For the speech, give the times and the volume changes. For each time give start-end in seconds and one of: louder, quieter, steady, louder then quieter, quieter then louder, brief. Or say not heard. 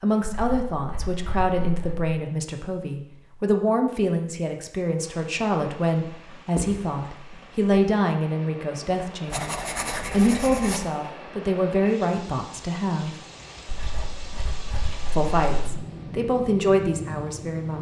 0.0-13.2 steady
15.1-17.7 brief.